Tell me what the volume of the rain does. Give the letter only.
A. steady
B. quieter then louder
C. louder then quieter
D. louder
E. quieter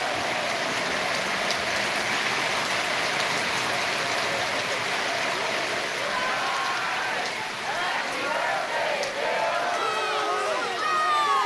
E.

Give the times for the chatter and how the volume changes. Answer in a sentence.
The chatter can be heard from 0.0 to 11.4 s, getting louder.